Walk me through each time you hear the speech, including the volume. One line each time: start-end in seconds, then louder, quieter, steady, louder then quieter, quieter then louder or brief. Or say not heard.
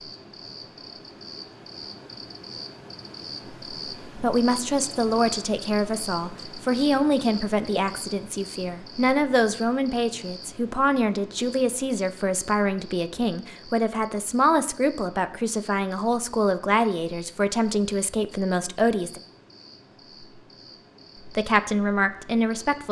4.2-19.2 steady
21.2-22.8 brief.